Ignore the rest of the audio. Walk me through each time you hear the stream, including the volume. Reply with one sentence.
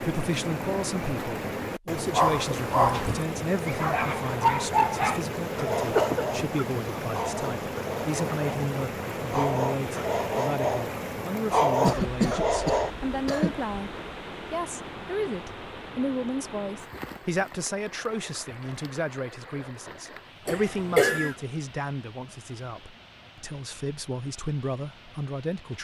The stream can be heard from 0.0 to 25.8 s, getting quieter.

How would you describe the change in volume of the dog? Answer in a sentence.
The loudness of the dog goes down, then up.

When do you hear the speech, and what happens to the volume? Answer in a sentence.
You can hear the speech from 0.0 to 25.8 s, at a steady volume.